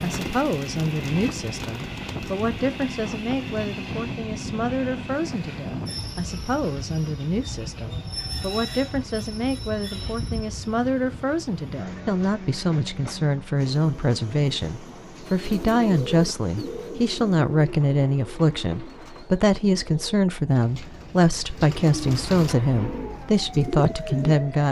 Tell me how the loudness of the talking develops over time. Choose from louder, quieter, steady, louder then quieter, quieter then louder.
louder.